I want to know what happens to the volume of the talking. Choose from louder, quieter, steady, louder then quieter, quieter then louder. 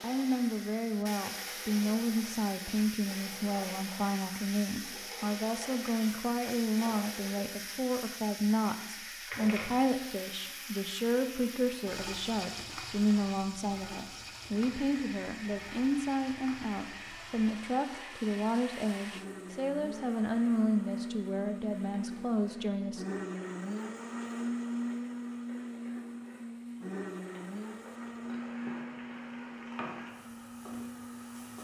steady.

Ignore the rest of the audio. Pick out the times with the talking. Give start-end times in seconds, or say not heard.
0.0-23.1.